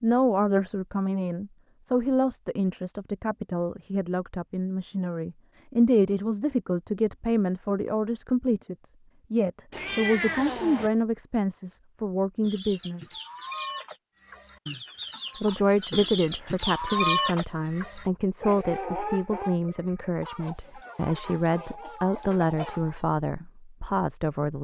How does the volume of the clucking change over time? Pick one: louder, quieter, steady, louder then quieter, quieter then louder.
louder then quieter.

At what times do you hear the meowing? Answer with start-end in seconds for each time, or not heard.
9.7-10.9.